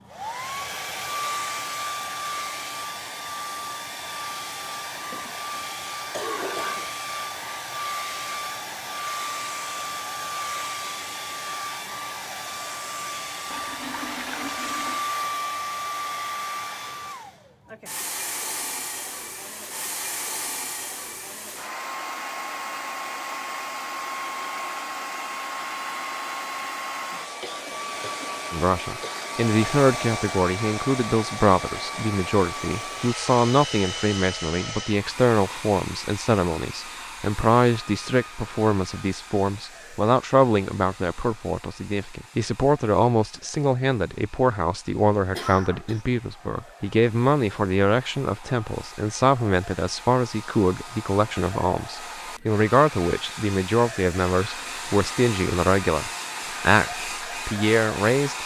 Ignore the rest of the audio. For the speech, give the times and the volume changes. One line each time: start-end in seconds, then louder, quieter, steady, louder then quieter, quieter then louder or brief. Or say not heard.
28.5-58.4 steady.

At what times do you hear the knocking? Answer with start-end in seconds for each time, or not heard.
not heard.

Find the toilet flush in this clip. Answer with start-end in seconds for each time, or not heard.
13.5-15.1.